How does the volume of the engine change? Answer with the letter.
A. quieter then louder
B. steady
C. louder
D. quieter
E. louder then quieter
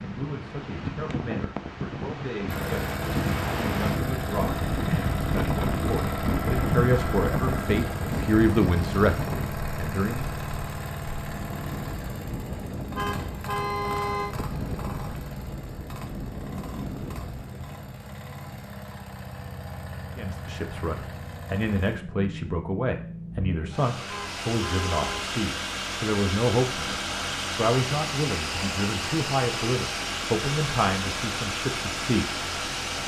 A.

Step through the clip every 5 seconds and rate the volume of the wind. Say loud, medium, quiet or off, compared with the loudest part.
loud, loud, medium, medium, off, off, off.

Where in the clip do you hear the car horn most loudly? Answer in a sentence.
The loudest moment of the car horn is at 14 seconds.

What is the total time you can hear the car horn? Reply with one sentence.
You can hear the car horn for 3 seconds altogether.